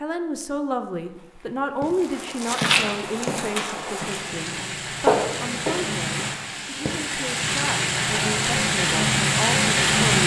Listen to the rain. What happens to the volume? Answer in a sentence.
The loudness of the rain goes up.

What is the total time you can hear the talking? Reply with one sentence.
The talking can be heard for 10 seconds in total.